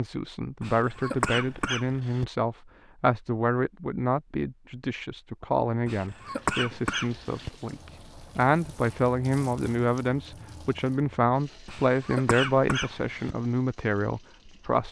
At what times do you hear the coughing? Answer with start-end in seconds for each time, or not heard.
0.6-2.2, 5.8-7.5, 11.7-13.3.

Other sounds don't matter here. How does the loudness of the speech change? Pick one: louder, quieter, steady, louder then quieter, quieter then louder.
steady.